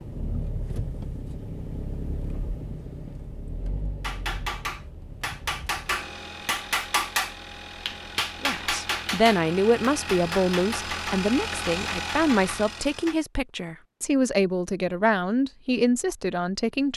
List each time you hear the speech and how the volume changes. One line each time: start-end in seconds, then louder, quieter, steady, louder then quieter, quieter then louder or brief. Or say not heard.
8.4-16.9 steady.